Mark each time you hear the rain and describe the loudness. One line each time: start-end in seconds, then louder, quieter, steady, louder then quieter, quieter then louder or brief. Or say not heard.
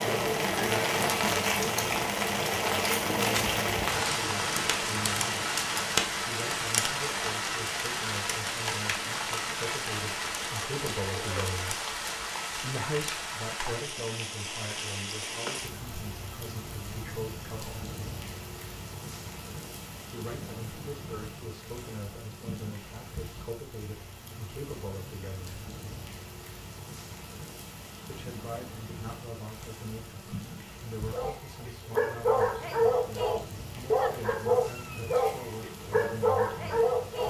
0.0-37.2 quieter.